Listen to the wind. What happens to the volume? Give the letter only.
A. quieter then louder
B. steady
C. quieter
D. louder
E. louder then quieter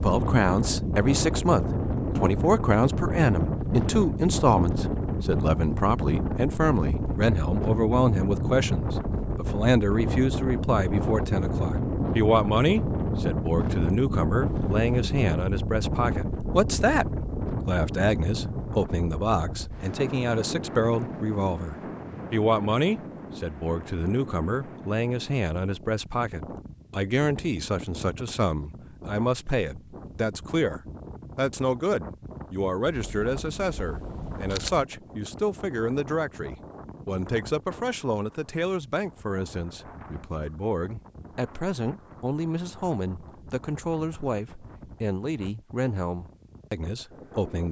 C.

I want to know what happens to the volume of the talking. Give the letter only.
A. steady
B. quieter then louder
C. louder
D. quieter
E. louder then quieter
D.